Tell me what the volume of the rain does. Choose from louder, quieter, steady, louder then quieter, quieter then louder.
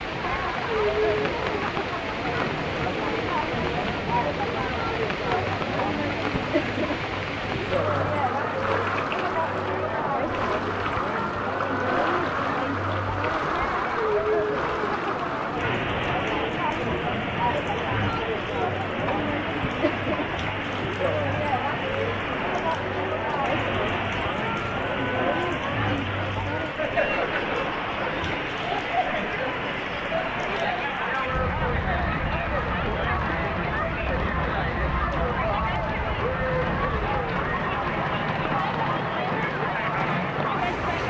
steady.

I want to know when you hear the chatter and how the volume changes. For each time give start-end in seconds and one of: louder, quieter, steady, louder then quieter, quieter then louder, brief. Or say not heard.
0.0-41.0 steady.